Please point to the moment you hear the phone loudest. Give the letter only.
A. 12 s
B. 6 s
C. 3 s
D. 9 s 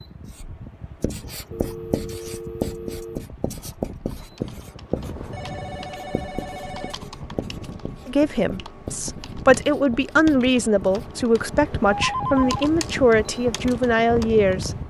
A.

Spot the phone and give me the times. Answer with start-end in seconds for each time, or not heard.
1.5-3.2, 5.0-7.0, 11.9-12.7.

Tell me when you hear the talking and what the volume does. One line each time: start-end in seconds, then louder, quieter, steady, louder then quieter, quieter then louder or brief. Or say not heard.
8.1-14.7 steady.